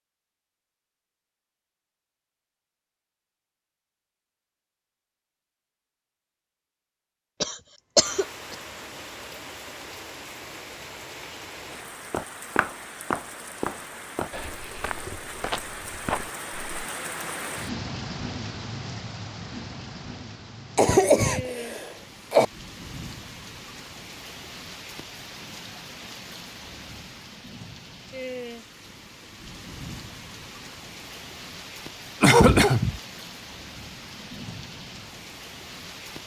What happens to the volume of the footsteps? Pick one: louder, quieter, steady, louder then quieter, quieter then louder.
quieter.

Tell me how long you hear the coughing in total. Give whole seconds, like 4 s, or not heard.
4 s.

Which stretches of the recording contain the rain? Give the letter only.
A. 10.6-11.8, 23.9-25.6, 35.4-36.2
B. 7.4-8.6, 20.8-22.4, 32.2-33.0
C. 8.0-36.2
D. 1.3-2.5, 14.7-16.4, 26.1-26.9
C.